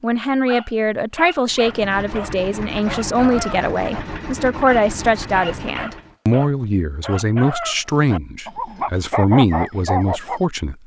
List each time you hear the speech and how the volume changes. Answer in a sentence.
The speech can be heard from 0.0 to 10.8 s, at a steady volume.